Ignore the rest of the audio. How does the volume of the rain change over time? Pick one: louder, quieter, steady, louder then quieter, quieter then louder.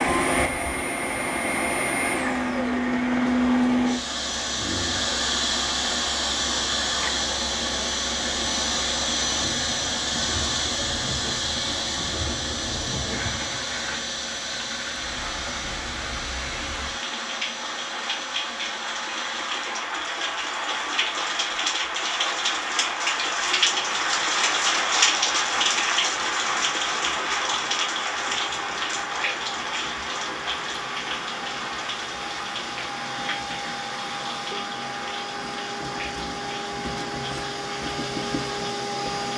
louder then quieter.